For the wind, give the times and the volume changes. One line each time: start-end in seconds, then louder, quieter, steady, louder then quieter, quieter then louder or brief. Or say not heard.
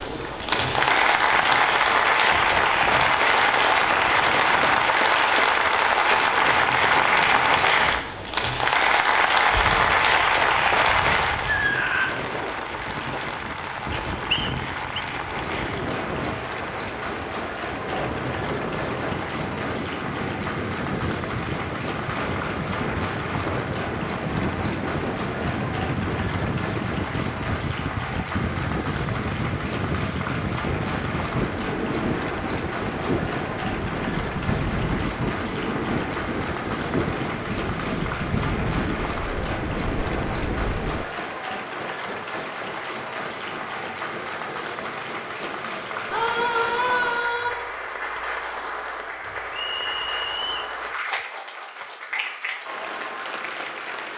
0.0-41.0 louder.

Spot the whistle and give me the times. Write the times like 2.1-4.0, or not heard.
13.9-15.0, 49.5-50.8.